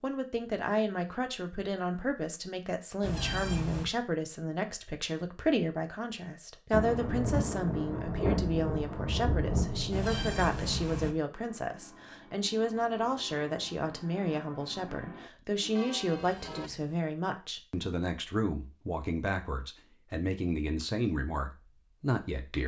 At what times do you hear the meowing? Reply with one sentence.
You can hear the meowing from 3.0 to 3.9 s, from 9.9 to 11.2 s and from 16.1 to 16.9 s.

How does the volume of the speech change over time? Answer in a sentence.
The loudness of the speech stays about the same.